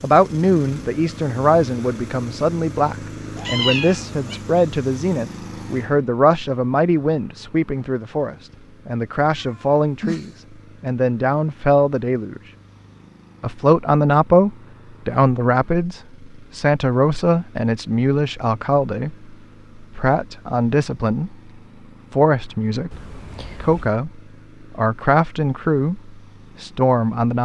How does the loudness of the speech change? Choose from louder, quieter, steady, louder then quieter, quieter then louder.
steady.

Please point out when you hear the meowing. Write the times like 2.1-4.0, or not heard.
3.4-4.4, 9.2-10.3, 22.9-24.0.